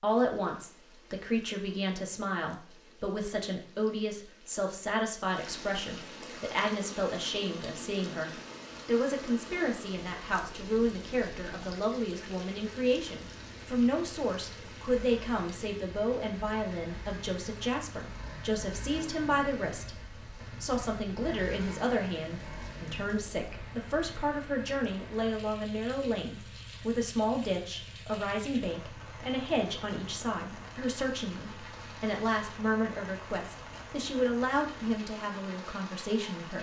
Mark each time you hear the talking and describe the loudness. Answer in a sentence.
The talking can be heard from 0.0 to 36.5 s, at a steady volume.